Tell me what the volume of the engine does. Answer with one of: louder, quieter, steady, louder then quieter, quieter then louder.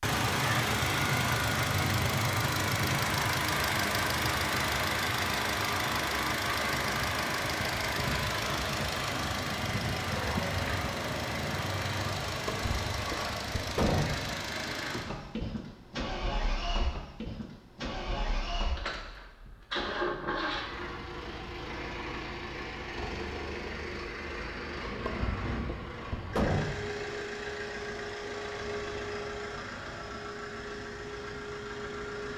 quieter.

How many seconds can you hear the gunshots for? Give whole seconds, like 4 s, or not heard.
4 s.